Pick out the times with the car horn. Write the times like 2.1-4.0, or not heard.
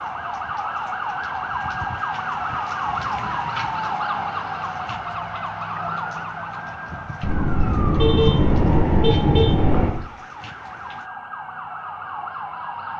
7.2-9.9.